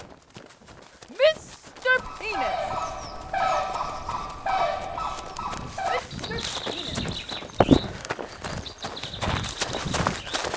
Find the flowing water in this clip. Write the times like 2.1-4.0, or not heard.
not heard.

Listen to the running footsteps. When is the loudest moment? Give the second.
8 s.